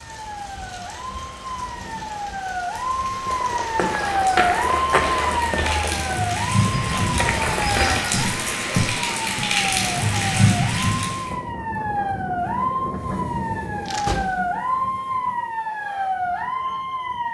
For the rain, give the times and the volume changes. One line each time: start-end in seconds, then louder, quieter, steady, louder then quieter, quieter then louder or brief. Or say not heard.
0.0-11.3 louder.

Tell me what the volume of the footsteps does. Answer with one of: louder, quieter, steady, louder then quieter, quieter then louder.
quieter then louder.